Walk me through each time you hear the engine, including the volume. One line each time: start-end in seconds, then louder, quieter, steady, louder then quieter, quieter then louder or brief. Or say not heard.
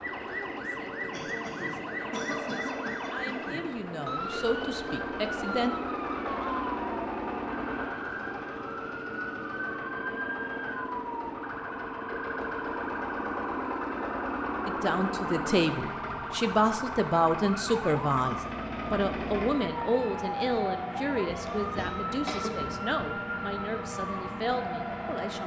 0.0-25.4 steady.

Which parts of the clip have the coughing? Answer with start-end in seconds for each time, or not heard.
1.1-3.6, 21.2-22.9.